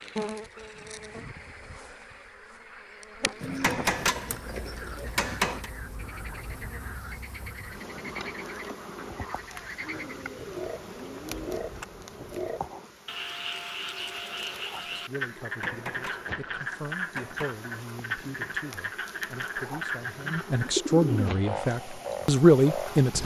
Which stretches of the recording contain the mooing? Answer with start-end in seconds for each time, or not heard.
not heard.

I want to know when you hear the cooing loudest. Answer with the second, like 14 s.
21 s.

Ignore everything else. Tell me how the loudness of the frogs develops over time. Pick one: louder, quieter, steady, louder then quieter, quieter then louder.
louder.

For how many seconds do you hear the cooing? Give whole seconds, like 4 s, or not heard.
6 s.